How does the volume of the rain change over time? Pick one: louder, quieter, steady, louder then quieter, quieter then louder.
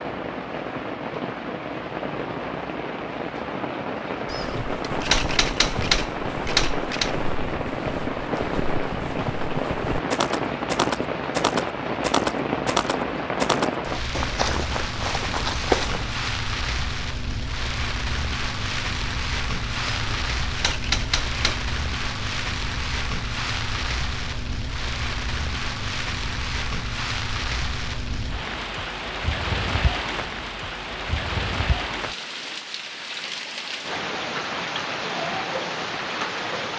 steady.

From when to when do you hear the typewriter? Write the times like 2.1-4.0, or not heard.
4.2-7.2, 19.9-21.6.